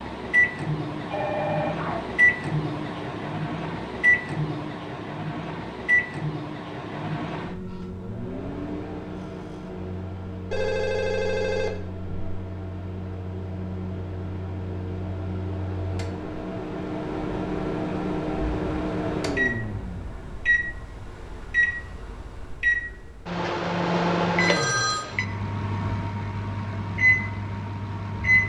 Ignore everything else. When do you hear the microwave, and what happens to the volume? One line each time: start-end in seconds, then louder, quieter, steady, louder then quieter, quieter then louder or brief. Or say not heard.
0.0-28.4 quieter then louder.